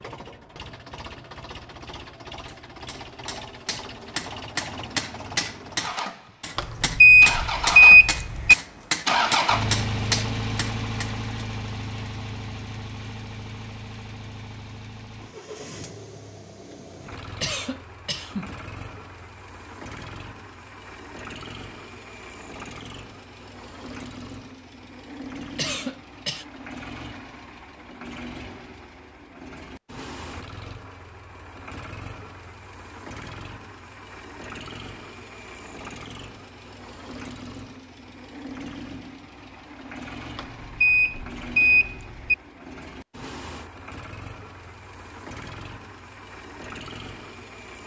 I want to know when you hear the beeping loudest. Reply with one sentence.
The loudest moment of the beeping is at 8 seconds.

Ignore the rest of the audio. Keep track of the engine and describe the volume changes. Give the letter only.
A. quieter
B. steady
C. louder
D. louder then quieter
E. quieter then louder
A.